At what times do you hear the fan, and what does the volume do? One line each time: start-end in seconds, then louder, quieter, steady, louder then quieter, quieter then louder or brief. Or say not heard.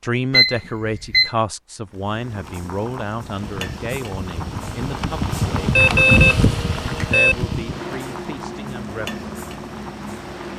3.2-10.5 louder then quieter.